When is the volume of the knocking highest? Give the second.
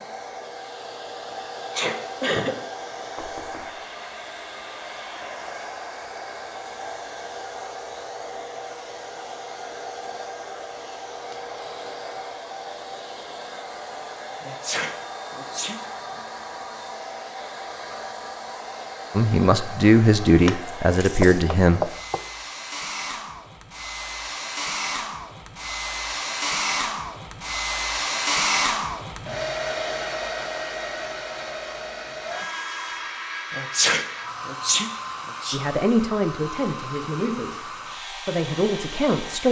22 s.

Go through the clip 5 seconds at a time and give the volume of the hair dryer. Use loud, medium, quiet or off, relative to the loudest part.
medium, medium, medium, medium, medium, loud, medium, medium.